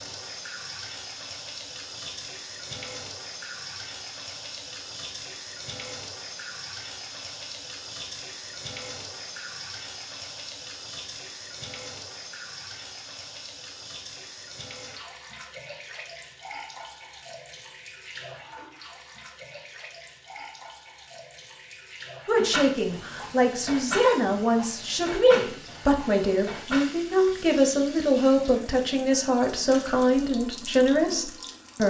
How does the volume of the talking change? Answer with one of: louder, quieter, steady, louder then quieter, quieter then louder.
steady.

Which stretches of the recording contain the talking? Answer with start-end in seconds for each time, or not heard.
22.2-31.8.